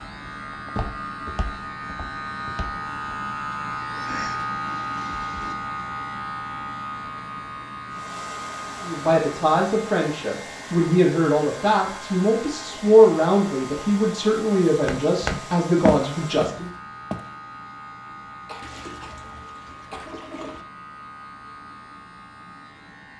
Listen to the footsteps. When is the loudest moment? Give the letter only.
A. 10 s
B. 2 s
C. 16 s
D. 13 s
C.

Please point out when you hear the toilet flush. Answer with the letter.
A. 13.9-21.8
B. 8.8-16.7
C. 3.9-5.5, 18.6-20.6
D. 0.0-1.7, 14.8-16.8
C.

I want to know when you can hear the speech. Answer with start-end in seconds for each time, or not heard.
8.8-16.7.